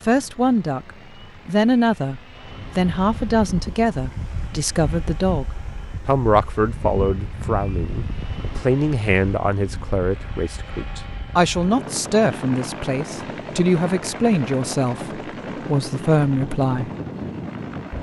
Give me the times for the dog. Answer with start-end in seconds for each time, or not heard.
not heard.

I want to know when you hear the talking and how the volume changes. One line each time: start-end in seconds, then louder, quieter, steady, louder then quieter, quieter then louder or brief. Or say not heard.
0.1-16.9 steady.